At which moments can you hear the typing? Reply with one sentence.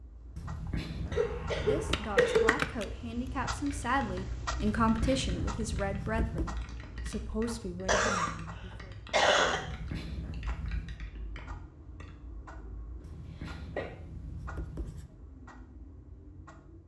You can hear the typing from 1.9 to 12.2 s.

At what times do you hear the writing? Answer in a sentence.
The writing can be heard from 0.3 to 2.0 s, from 4.8 to 6.5 s, from 9.5 to 11.0 s and from 13.0 to 15.2 s.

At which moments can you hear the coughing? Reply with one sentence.
You can hear the coughing from 1.1 to 2.5 s, from 7.8 to 8.3 s, from 9.1 to 9.6 s and from 13.0 to 13.9 s.